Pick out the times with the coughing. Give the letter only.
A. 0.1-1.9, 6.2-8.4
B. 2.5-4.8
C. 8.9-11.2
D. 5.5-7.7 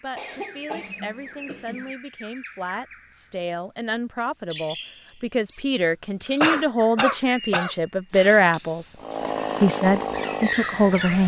A.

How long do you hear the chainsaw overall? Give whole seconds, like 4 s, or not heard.
2 s.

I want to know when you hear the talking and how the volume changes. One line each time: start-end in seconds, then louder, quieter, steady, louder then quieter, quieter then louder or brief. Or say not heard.
0.0-8.9 louder
9.6-11.2 brief.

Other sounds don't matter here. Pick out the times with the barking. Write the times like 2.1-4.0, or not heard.
not heard.